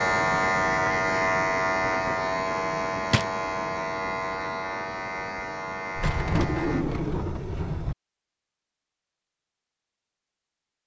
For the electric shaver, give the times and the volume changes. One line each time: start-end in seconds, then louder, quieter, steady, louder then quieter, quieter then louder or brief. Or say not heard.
0.0-6.8 quieter.